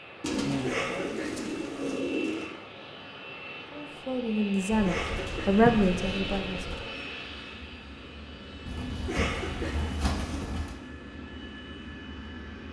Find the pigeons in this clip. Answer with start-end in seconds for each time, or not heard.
0.2-2.5, 4.7-6.8, 8.7-10.8.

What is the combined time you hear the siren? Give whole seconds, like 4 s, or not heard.
not heard.